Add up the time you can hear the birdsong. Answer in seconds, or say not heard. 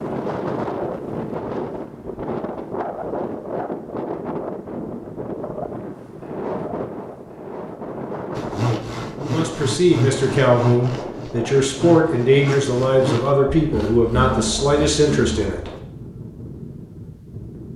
not heard.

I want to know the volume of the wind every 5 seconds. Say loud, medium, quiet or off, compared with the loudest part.
loud, loud, medium, medium.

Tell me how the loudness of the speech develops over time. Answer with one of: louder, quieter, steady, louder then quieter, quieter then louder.
steady.